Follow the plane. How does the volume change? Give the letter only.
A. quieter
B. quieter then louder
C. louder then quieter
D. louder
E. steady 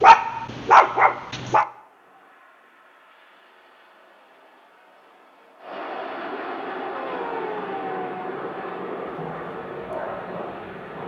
D.